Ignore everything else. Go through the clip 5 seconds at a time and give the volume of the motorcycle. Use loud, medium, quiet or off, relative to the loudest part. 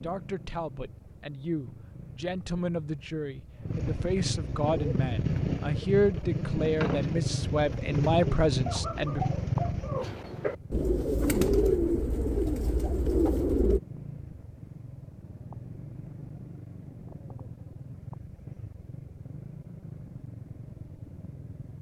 medium, loud, quiet, quiet, quiet.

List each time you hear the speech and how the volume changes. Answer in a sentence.
The speech can be heard from 0.0 to 9.2 s, getting louder.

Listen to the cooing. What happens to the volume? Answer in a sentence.
The volume of the cooing goes up.